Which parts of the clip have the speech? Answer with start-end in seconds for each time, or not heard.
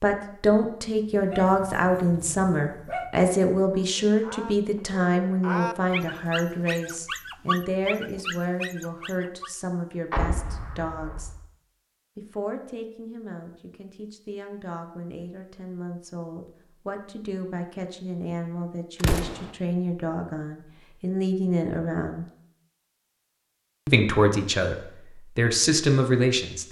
0.0-11.3, 12.2-22.2, 23.9-26.6.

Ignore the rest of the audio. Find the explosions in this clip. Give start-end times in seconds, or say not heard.
10.1-11.3, 19.0-19.5.